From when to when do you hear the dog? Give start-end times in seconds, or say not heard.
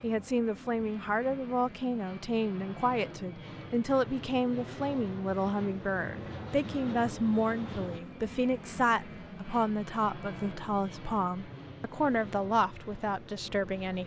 not heard.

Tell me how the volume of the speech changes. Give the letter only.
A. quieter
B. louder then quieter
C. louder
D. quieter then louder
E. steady
E.